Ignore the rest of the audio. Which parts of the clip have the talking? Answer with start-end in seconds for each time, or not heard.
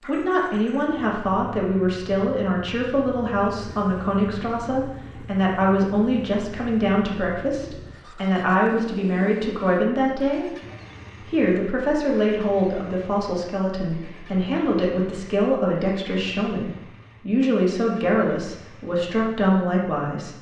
0.0-10.4, 11.2-20.3.